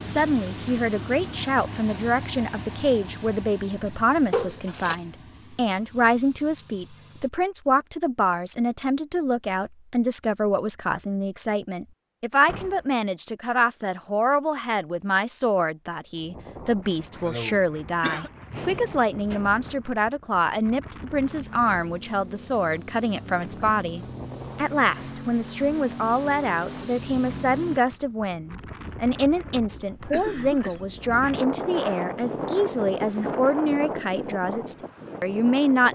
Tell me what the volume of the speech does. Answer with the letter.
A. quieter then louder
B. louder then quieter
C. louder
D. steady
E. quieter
D.